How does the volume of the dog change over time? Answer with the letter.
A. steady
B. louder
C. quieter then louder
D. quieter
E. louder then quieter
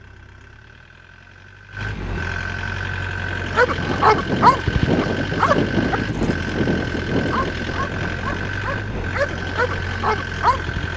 C.